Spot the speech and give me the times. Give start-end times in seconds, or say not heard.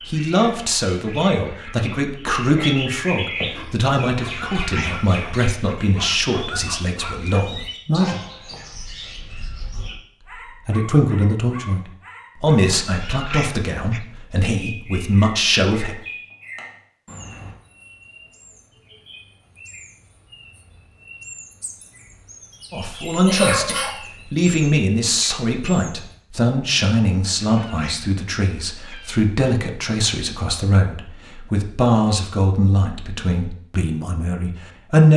0.1-8.2, 10.4-15.9, 22.7-35.1.